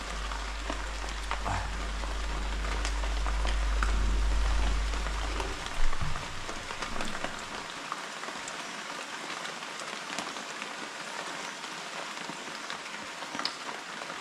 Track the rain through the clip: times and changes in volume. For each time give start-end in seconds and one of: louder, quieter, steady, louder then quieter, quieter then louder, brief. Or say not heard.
0.0-14.1 steady.